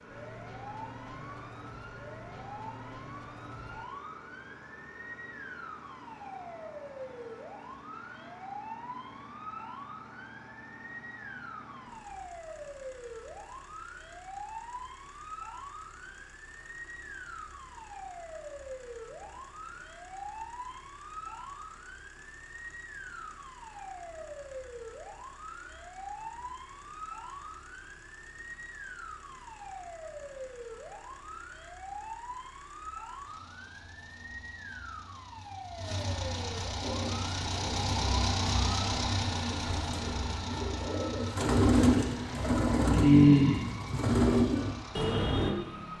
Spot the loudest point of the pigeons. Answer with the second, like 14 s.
43 s.